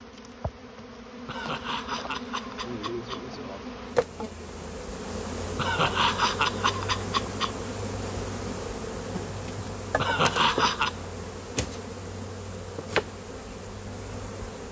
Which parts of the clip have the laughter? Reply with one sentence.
The laughter can be heard from 1.2 to 3.2 s, from 5.5 to 7.5 s and from 9.9 to 10.9 s.